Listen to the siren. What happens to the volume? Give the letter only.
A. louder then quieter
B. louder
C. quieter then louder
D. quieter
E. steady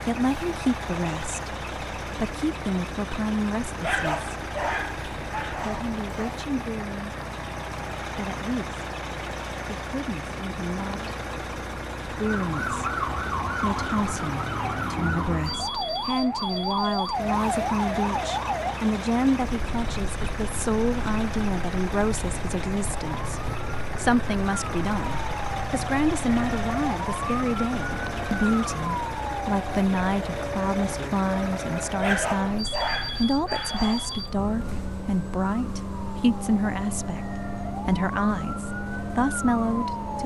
D.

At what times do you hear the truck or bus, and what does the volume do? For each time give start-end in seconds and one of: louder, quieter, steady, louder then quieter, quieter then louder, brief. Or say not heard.
0.0-40.2 steady.